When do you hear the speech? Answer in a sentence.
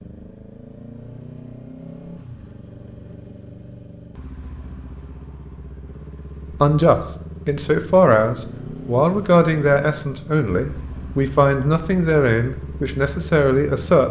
The speech can be heard from 6.6 to 14.0 s.